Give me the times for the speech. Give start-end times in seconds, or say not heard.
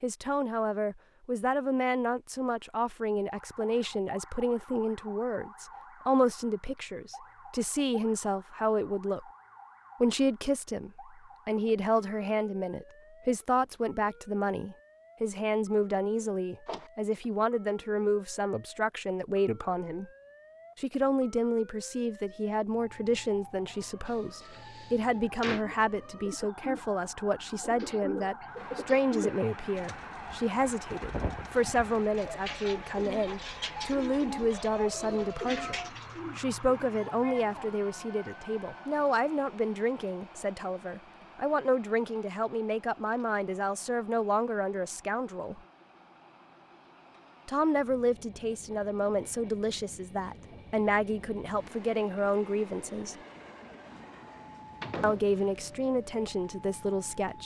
0.0-9.2, 10.0-20.1, 20.8-45.6, 47.5-53.1, 55.0-57.4.